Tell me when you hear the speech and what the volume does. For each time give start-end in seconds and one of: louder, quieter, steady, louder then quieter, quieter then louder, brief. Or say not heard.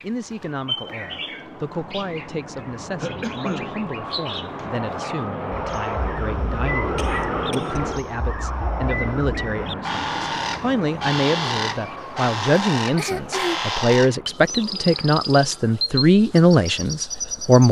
0.0-17.6 louder.